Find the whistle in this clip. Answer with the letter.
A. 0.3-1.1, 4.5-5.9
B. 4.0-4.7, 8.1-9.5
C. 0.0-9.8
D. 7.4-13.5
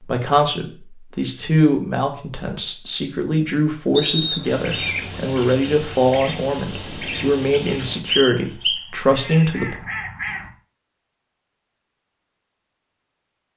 B.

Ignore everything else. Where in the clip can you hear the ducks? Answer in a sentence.
You can hear the ducks from 4.4 to 10.5 s.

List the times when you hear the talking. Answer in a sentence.
You can hear the talking from 0.0 to 9.8 s.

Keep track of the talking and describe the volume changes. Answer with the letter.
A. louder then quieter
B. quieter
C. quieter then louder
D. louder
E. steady
E.